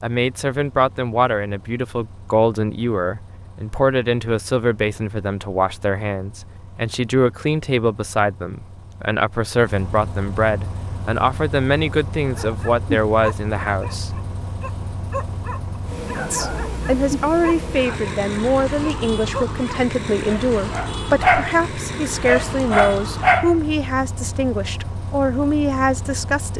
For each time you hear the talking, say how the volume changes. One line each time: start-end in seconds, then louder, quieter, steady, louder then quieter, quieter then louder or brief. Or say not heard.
0.0-14.2 steady
16.3-26.5 steady.